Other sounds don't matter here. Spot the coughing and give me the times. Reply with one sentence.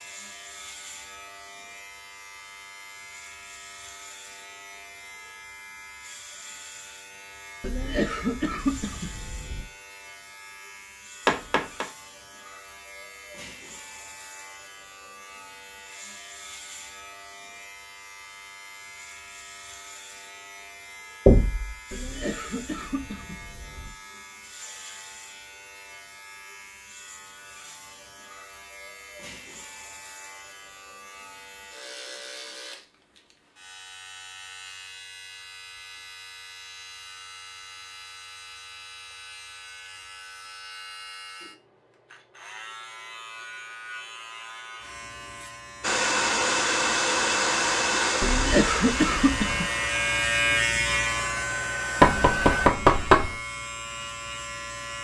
You can hear the coughing from 7.6 to 9.7 s, from 21.9 to 23.9 s and from 48.2 to 49.7 s.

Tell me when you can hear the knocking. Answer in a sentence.
The knocking can be heard from 11.2 to 11.8 s, from 21.2 to 21.8 s and from 52.0 to 53.4 s.